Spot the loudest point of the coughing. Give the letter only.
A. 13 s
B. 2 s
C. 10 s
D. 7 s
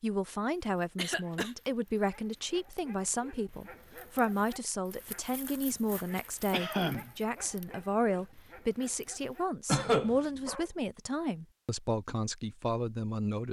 C.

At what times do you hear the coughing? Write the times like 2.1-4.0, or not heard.
0.9-1.5, 6.5-7.1, 9.7-10.6.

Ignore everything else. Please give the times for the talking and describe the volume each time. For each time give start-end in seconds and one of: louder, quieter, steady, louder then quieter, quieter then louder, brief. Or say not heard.
0.0-13.4 steady.